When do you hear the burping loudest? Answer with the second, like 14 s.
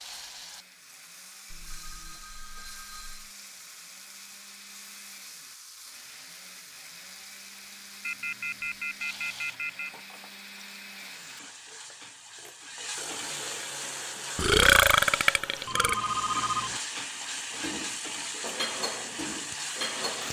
15 s.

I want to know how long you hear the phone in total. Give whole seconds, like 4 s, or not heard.
5 s.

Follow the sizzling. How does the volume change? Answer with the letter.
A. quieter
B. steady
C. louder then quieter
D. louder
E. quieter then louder
D.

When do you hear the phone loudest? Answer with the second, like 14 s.
16 s.